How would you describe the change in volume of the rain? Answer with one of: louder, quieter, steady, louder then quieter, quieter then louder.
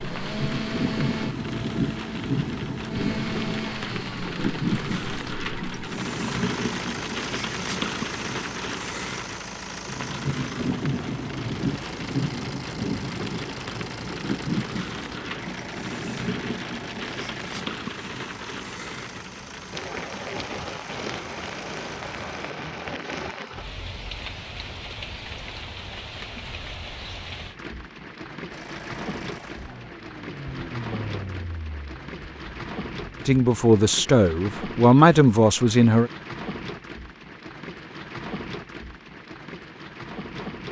quieter.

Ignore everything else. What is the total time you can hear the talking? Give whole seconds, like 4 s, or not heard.
3 s.